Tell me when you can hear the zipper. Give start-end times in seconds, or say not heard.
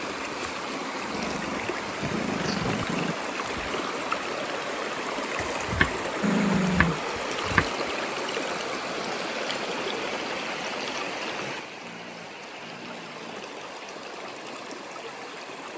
not heard.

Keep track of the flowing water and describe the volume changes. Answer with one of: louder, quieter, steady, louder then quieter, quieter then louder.
quieter.